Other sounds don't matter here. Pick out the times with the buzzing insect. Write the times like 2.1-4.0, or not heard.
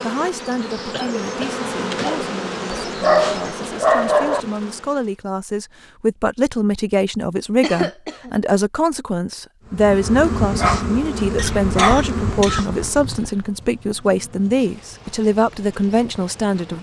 0.0-5.2, 9.7-16.7.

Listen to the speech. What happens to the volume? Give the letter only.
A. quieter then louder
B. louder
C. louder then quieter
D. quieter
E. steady
B.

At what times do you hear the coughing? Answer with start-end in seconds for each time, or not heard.
0.9-2.2, 7.6-8.3, 11.3-13.3.